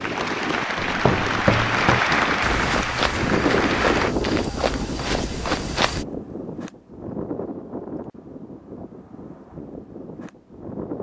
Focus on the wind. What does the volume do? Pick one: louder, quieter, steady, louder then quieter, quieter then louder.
louder then quieter.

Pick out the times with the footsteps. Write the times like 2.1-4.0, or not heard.
0.8-6.0.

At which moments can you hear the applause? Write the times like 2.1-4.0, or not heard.
0.0-4.2.